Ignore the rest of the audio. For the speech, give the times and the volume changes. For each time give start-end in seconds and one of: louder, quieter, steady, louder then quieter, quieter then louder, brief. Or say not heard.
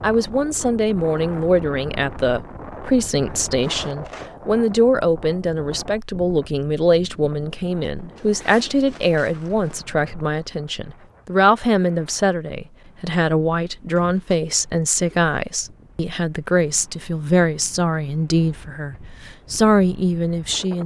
0.0-20.8 steady.